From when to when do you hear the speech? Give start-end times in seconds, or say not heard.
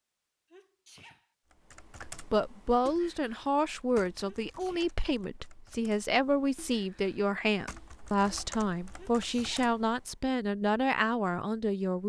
2.0-12.0.